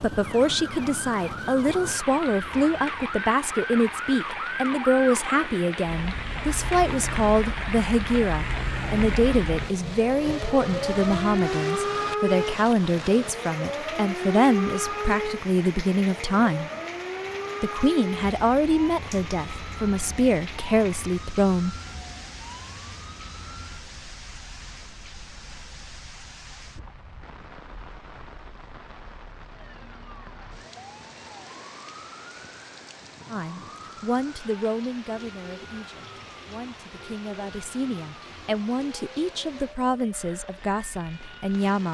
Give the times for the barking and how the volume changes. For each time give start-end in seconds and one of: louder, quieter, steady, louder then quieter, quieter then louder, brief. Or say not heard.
not heard.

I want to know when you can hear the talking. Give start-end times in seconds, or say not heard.
0.0-16.7, 17.6-21.8, 33.3-41.8.